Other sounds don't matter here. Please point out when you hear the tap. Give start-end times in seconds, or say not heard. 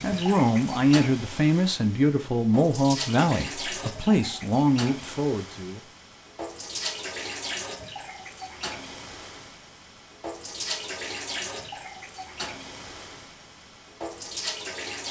0.0-15.0.